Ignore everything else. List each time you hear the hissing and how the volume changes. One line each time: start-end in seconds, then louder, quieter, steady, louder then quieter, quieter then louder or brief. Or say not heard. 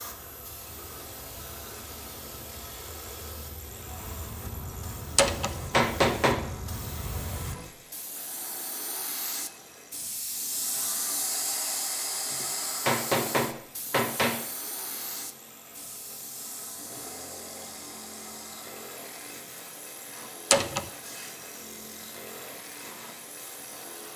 0.0-24.1 louder then quieter.